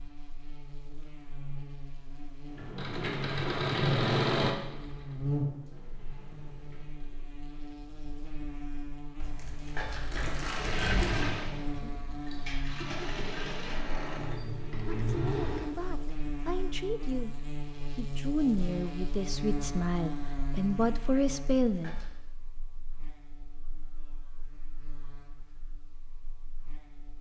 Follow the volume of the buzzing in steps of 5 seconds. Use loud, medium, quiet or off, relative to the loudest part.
medium, loud, loud, loud, medium, quiet.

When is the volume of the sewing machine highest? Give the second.
4 s.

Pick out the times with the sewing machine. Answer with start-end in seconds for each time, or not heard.
2.5-7.2, 10.3-15.7.